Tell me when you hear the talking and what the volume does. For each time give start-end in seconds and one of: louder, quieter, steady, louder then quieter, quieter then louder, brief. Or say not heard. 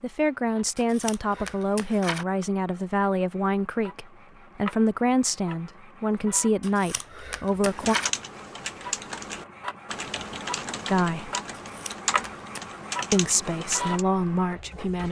0.0-8.0 steady
10.9-11.3 brief
13.1-15.0 brief.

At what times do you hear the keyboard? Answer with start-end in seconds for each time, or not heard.
7.7-14.1.